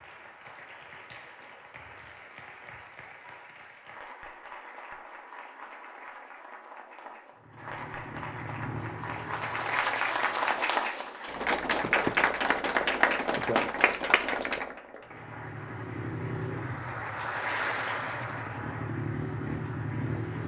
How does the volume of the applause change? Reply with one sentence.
The volume of the applause goes up, then down.